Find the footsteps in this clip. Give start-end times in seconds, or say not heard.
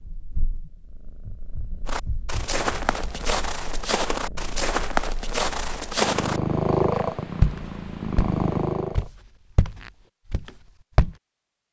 1.9-11.2.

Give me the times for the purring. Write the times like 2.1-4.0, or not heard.
0.0-9.1.